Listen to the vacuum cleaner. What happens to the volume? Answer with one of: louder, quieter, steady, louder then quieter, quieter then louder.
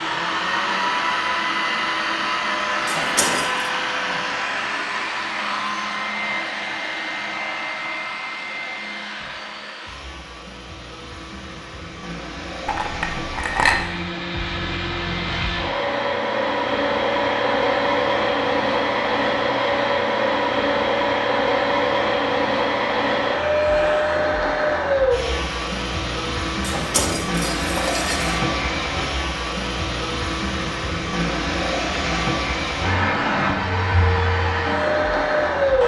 quieter then louder.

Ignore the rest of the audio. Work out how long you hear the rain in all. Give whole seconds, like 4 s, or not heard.
not heard.